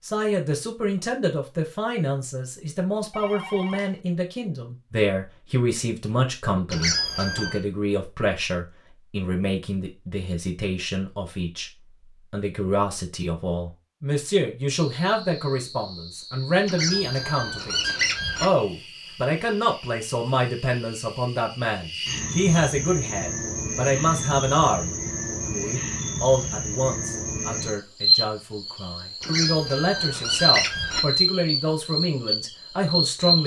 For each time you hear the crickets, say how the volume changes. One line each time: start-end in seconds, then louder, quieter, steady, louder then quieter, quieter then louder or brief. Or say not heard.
14.9-33.4 louder.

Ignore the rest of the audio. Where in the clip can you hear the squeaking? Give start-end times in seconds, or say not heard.
6.7-7.6, 16.6-18.4, 29.2-31.0.